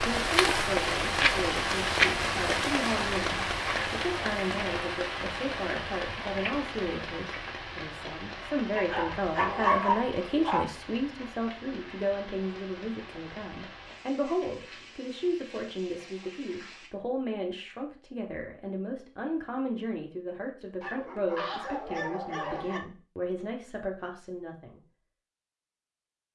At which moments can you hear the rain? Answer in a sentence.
You can hear the rain from 0.0 to 16.9 s.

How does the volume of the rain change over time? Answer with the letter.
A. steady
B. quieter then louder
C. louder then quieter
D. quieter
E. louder
D.